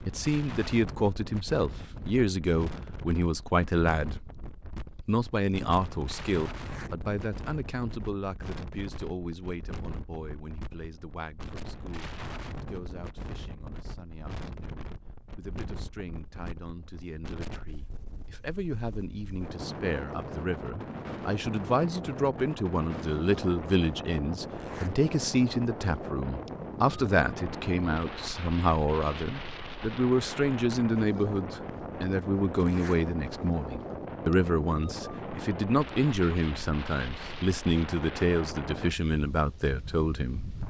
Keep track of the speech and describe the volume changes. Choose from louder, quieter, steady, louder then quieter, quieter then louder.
quieter then louder.